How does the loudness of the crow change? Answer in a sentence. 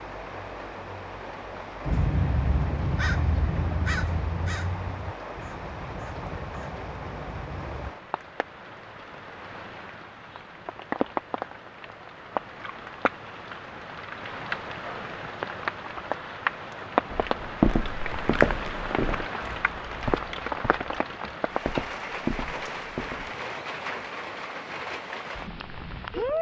The loudness of the crow goes down.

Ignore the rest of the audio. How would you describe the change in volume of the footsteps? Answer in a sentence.
The volume of the footsteps goes down.